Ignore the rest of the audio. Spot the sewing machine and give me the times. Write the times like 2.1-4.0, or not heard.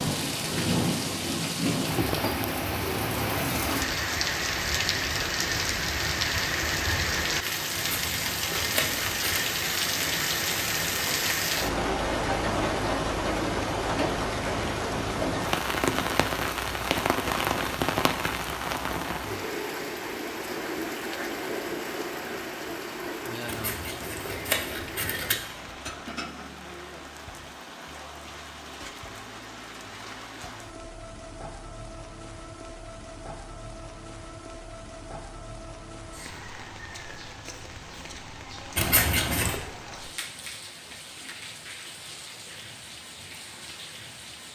not heard.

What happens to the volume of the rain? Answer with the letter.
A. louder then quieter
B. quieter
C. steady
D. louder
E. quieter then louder
B.